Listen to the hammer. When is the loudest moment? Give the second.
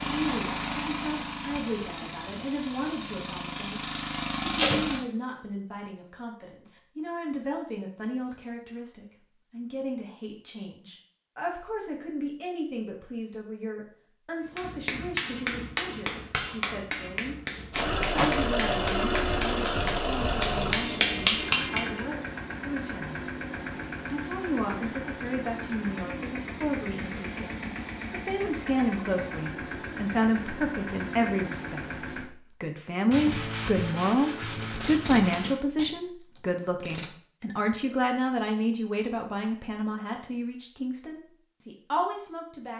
21 s.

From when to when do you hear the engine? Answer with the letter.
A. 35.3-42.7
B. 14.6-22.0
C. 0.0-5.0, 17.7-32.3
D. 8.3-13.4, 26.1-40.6
C.